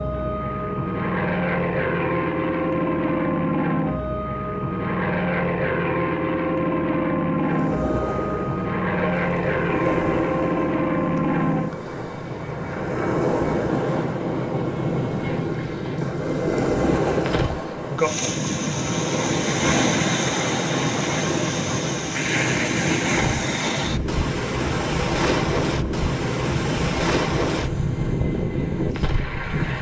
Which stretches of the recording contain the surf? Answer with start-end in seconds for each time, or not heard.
7.3-29.7.